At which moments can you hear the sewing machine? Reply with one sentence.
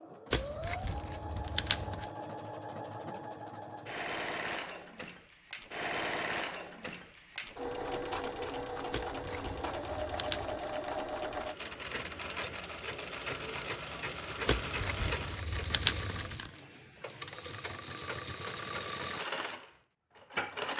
The sewing machine can be heard from 0.0 to 20.7 s.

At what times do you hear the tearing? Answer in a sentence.
The tearing can be heard from 0.3 to 2.1 s, from 8.9 to 10.6 s and from 14.4 to 16.5 s.